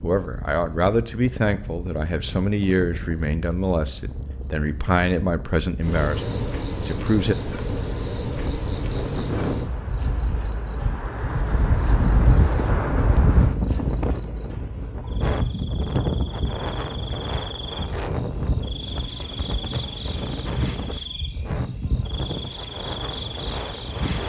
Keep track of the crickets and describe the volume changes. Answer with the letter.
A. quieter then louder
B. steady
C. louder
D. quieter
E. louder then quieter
D.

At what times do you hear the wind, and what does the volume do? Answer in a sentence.
You can hear the wind from 0.0 to 24.2 s, getting louder then quieter.